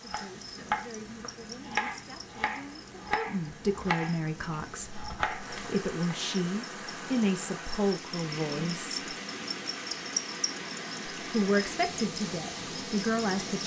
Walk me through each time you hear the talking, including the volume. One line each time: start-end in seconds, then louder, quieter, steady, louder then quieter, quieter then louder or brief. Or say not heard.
0.0-8.9 louder
11.3-13.6 brief.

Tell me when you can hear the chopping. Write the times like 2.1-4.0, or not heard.
0.1-6.2.